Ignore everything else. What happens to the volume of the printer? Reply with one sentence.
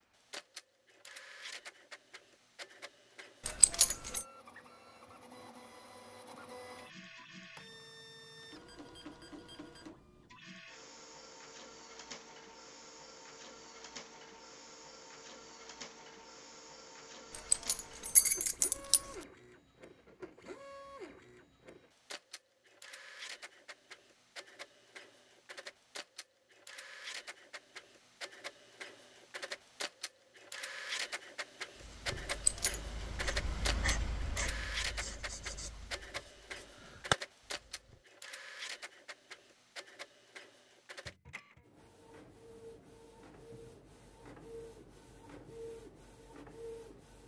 The loudness of the printer goes up, then down.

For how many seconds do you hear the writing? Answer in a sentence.
The writing can be heard for 6 seconds in total.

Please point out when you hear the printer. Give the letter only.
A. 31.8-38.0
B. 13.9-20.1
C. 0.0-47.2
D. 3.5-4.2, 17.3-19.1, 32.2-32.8
C.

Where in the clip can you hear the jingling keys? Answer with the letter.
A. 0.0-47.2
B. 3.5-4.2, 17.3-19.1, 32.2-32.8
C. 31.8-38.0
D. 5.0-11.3
B.